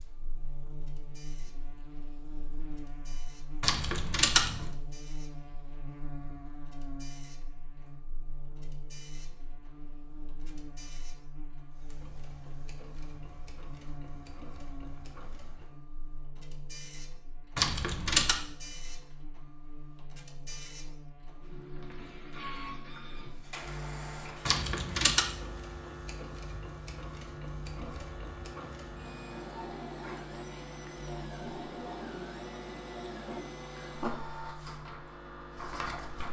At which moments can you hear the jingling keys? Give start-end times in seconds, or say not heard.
3.6-4.7, 17.6-18.4, 24.4-25.3.